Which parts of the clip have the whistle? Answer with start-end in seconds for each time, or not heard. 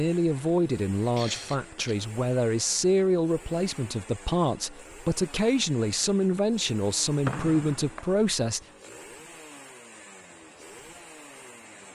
7.2-8.1.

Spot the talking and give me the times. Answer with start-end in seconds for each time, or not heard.
0.0-8.6.